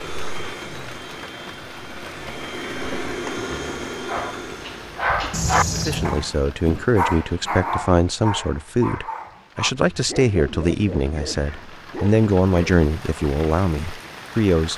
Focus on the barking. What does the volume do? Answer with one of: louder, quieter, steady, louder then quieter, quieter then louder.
quieter.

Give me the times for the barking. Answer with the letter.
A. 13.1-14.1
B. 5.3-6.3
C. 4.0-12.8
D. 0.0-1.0
C.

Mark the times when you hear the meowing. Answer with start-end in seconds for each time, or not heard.
5.3-6.3.